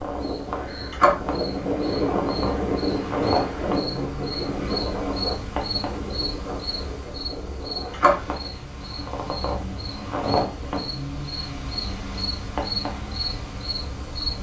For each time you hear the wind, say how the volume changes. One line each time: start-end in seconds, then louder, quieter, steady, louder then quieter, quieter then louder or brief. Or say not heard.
0.0-14.3 quieter.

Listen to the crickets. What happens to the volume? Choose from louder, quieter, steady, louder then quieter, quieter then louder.
steady.